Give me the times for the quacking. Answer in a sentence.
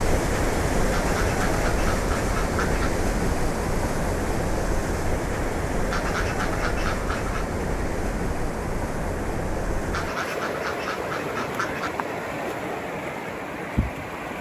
You can hear the quacking from 0.9 to 2.9 s, from 5.9 to 7.5 s and from 9.9 to 11.9 s.